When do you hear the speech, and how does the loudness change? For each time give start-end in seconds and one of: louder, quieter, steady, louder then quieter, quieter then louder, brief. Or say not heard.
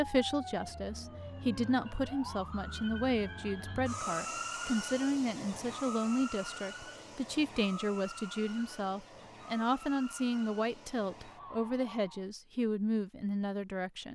0.0-14.1 steady.